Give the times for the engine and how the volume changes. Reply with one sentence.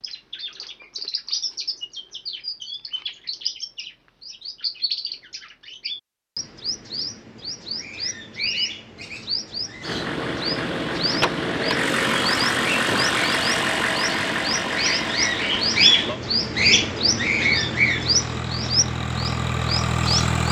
You can hear the engine from 9.8 to 20.4 s, getting quieter then louder.